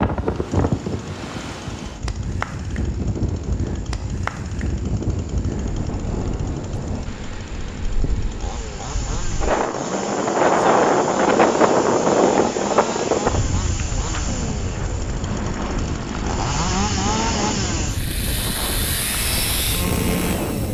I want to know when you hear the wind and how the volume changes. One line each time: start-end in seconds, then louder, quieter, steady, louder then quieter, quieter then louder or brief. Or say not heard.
0.0-20.6 louder then quieter.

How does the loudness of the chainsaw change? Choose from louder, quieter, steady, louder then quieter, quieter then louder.
louder.